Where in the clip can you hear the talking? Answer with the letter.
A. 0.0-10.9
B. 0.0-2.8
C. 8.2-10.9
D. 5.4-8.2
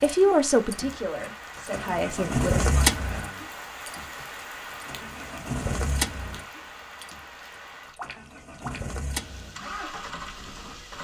B.